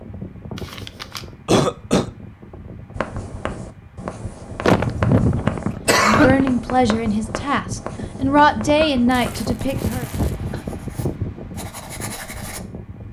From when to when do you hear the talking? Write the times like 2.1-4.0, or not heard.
6.0-10.1.